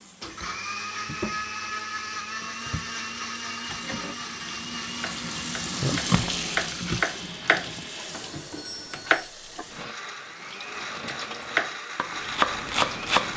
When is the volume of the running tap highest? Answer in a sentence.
The volume of the running tap peaks at 6 seconds.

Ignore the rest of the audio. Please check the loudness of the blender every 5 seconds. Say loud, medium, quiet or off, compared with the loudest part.
loud, medium, loud.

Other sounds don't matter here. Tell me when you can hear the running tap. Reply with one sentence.
You can hear the running tap from 0.0 to 13.2 s.